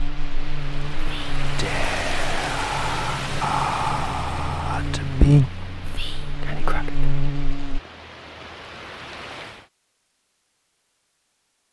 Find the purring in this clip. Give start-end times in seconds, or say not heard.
not heard.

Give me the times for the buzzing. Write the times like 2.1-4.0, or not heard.
0.0-7.8.